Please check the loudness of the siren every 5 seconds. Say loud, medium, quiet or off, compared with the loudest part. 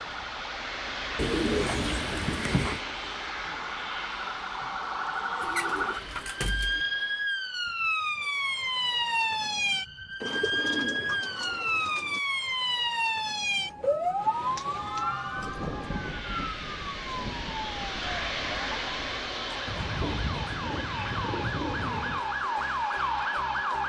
medium, loud, loud, medium, loud.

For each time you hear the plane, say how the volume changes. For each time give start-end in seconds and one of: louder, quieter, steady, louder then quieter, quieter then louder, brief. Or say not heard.
0.0-7.3 quieter
14.2-23.8 louder then quieter.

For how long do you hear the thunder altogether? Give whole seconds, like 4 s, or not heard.
4 s.